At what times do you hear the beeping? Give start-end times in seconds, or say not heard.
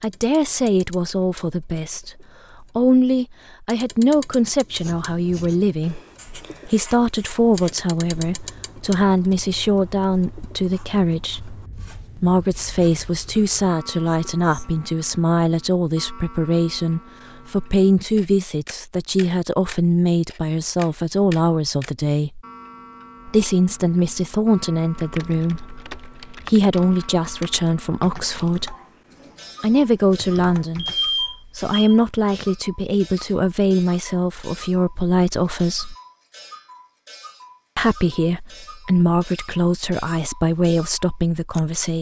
30.8-31.9.